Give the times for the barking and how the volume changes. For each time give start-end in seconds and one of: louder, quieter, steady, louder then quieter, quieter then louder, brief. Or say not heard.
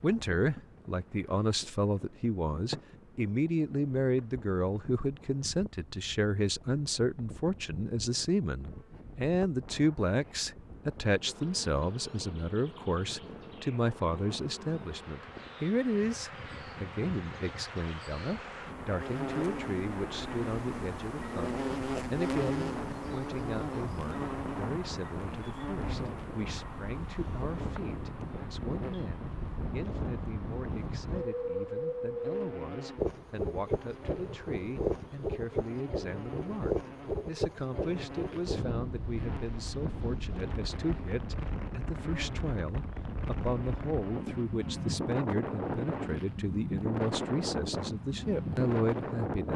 not heard.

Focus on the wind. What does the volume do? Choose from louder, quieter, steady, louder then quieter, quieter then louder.
louder.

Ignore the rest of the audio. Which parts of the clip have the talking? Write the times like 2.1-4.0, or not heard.
0.0-49.5.